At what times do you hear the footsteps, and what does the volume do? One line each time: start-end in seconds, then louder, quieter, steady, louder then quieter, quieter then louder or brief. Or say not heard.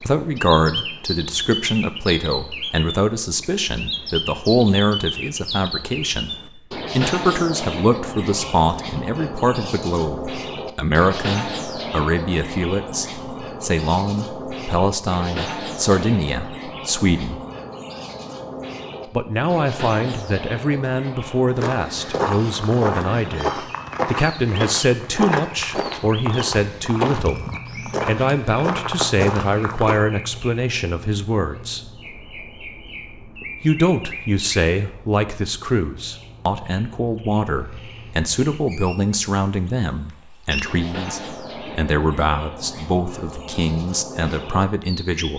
21.6-30.0 steady.